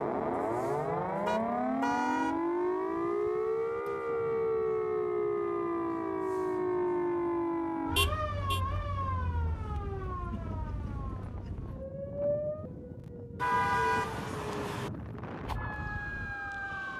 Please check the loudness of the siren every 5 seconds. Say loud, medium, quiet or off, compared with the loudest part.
loud, loud, medium, medium.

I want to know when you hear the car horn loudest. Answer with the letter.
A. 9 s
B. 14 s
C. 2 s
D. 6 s
B.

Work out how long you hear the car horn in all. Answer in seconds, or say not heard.
3 s.